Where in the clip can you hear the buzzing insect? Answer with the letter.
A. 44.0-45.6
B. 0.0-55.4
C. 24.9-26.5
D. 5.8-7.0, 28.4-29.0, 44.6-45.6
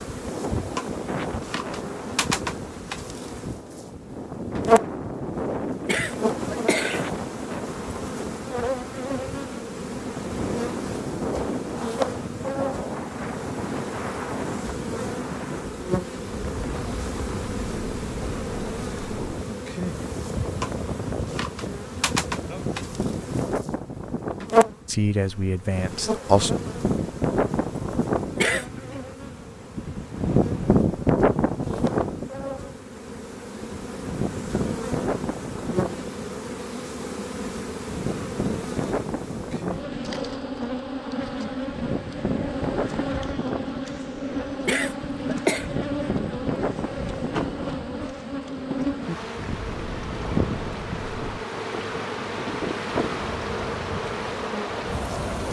B.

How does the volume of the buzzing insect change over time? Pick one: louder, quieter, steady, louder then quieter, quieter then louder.
steady.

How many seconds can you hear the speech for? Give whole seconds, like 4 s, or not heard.
2 s.